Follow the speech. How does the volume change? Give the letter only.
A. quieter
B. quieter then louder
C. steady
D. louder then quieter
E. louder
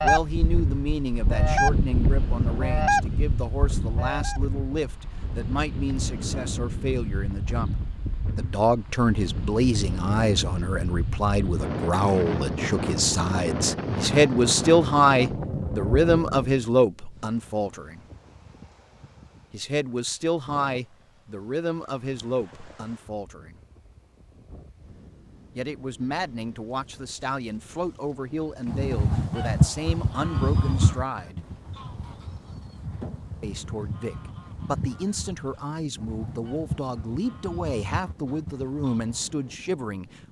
D.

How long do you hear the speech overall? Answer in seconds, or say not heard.
34 s.